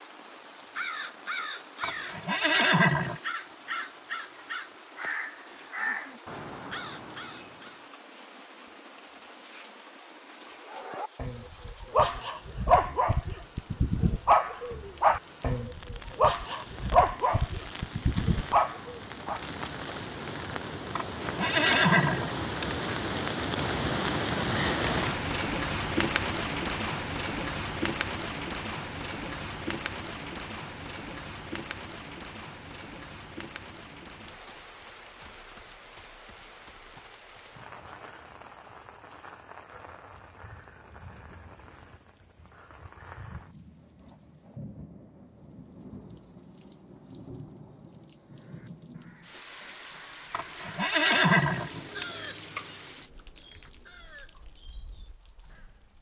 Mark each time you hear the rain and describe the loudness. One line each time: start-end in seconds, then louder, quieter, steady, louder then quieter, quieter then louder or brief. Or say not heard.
0.0-55.9 louder then quieter.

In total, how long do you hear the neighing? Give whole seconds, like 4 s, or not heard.
5 s.